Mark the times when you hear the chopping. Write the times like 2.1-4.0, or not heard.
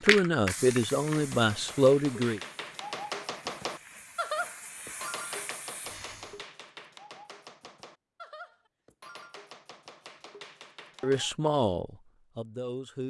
1.1-11.3.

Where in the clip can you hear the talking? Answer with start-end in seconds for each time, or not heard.
0.0-2.4, 11.0-13.0.